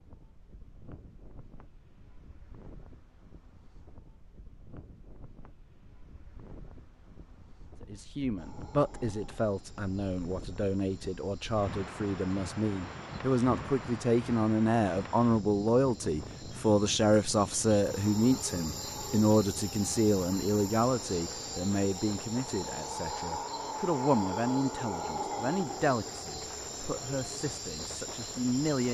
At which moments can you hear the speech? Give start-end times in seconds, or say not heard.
7.8-28.8.